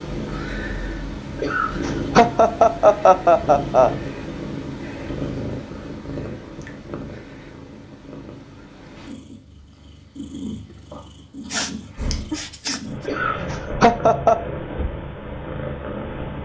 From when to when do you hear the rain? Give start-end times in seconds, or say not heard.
not heard.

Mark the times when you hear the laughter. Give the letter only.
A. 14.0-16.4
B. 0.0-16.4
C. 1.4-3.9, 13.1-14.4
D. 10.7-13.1
C.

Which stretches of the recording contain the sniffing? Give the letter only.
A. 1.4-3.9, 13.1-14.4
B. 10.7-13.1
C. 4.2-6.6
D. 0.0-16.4
B.